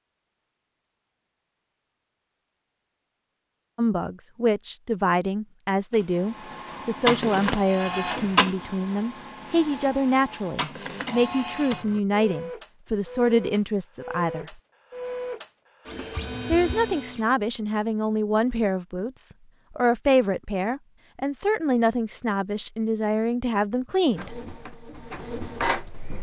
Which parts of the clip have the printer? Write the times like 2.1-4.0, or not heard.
5.9-17.2, 24.1-26.1.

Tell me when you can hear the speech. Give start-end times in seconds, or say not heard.
3.8-14.6, 16.4-24.4.